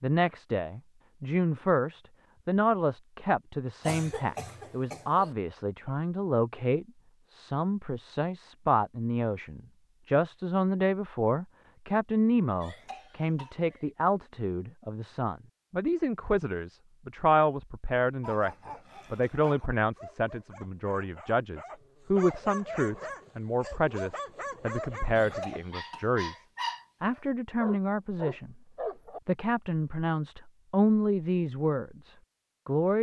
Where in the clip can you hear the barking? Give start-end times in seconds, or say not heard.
18.2-29.2.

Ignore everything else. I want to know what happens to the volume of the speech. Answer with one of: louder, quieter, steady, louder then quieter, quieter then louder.
steady.